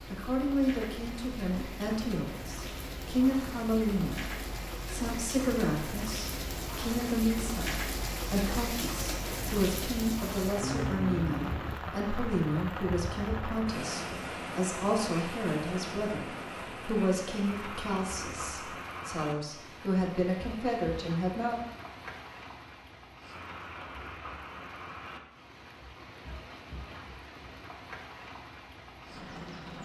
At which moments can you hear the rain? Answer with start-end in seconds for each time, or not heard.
0.0-29.8.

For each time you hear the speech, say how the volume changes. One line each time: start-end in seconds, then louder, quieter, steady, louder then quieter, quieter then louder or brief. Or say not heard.
0.0-21.6 steady.